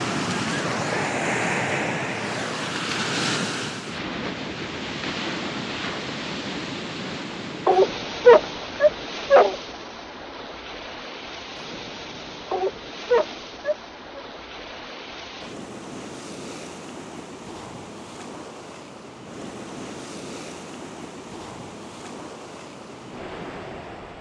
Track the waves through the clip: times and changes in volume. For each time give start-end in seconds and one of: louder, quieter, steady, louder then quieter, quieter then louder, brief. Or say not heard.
0.0-24.1 quieter.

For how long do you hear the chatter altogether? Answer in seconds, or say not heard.
not heard.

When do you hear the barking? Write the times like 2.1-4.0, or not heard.
7.7-9.6, 12.5-14.2.